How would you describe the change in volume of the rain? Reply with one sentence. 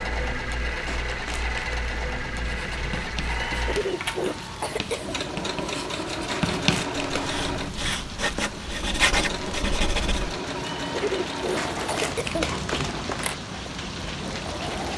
The volume of the rain goes up.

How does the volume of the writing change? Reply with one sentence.
The volume of the writing goes up.